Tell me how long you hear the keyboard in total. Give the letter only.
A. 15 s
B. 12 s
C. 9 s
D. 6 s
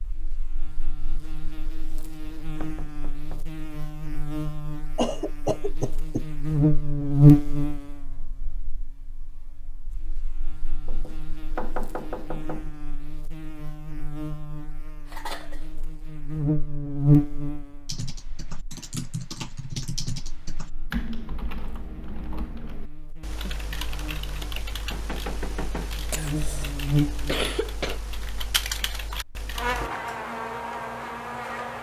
B.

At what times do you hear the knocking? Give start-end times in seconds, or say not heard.
2.2-3.5, 10.8-12.7, 24.3-25.9.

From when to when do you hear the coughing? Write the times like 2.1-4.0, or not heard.
5.0-6.2, 15.1-15.7, 26.1-28.0.